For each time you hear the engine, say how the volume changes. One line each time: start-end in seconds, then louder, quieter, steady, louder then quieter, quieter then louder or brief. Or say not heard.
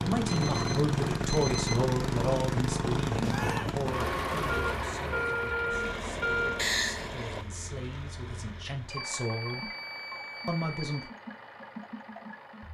0.0-12.6 quieter.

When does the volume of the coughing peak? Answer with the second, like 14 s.
7 s.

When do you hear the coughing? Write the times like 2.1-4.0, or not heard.
3.2-3.9, 6.5-7.4.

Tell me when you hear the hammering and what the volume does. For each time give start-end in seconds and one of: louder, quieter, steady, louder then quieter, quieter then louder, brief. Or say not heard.
not heard.